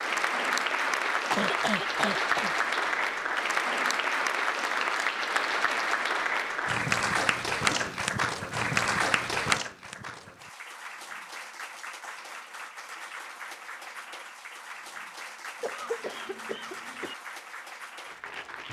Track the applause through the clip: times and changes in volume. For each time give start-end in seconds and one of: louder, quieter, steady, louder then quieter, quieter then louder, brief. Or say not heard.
0.0-18.6 quieter.